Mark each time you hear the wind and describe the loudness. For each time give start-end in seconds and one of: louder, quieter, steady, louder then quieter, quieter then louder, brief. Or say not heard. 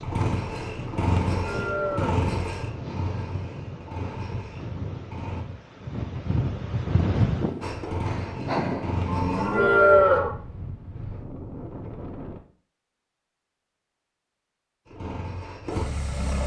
0.0-12.4 louder then quieter.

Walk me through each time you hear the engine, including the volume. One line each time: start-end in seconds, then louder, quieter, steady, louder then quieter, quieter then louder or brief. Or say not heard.
0.0-5.5 quieter
7.6-9.7 brief
14.8-16.4 brief.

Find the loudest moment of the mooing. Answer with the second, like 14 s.
10 s.